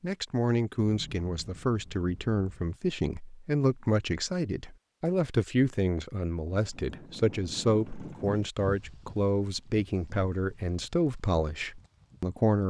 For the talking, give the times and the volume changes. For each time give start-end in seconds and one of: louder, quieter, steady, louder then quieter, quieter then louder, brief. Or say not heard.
0.0-12.6 steady.